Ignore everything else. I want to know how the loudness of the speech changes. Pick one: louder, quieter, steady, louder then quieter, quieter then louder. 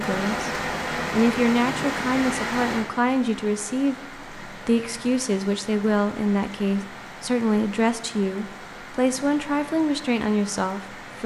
steady.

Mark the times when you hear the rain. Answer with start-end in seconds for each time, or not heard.
0.0-11.2.